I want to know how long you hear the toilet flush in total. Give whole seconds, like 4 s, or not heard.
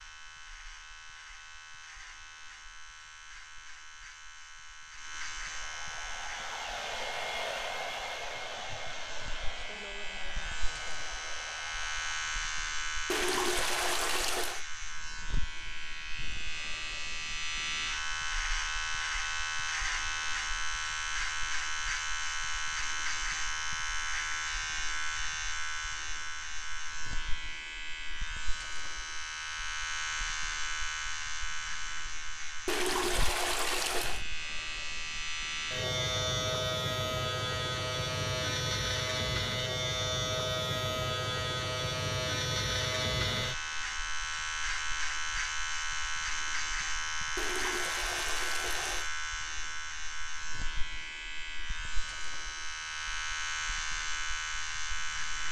5 s.